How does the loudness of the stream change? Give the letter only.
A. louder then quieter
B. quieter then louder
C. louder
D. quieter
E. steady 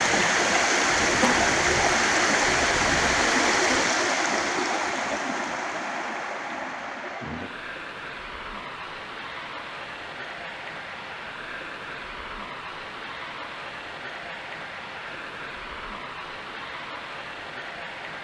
D.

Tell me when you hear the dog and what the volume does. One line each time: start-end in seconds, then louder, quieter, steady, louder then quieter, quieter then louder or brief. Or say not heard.
not heard.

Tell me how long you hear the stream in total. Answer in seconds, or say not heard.
18 s.